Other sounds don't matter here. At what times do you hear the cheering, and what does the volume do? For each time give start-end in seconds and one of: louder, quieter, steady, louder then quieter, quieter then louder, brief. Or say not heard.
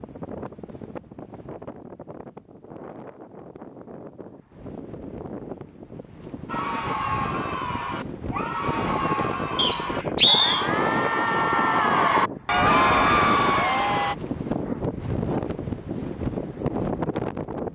6.5-14.2 louder.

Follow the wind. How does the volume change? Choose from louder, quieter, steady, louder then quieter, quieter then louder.
louder.